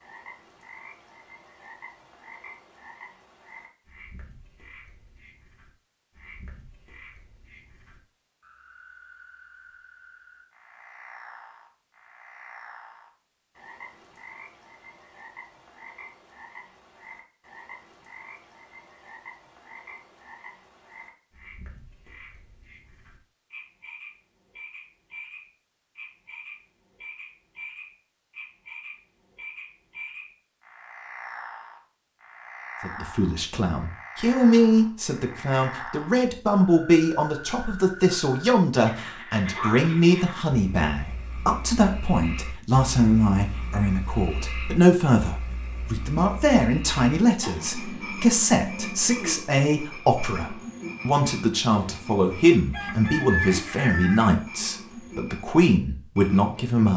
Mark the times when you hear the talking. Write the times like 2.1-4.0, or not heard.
32.8-56.9.